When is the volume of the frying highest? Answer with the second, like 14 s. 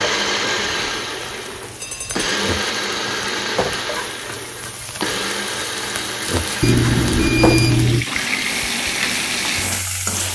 9 s.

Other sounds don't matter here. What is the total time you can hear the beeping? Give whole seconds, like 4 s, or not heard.
2 s.